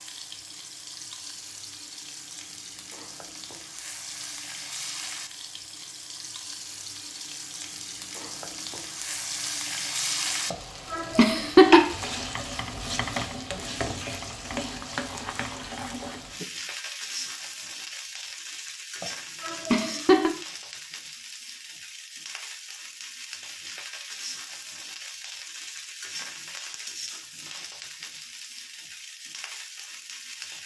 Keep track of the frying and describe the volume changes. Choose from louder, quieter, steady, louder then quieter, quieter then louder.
louder then quieter.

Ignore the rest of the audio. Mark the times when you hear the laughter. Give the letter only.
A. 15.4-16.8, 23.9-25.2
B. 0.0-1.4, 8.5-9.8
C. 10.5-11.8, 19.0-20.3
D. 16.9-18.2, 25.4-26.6
C.